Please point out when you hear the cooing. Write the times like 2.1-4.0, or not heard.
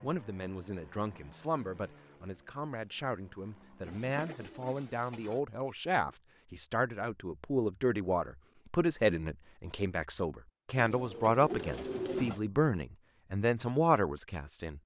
3.9-5.4, 10.8-12.4.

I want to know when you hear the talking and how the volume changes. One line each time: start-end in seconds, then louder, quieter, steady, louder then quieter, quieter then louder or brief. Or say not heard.
0.0-14.8 louder.